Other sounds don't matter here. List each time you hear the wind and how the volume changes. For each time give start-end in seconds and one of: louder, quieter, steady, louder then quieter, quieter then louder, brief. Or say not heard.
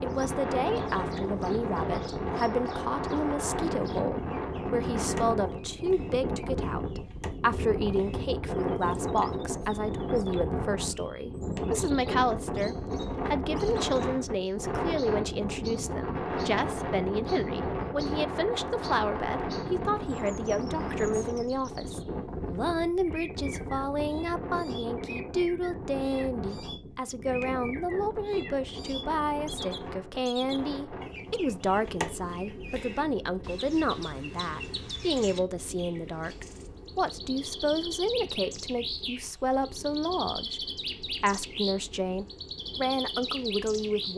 0.0-44.1 quieter.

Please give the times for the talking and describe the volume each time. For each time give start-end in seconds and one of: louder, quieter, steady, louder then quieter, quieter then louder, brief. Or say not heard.
0.0-44.1 steady.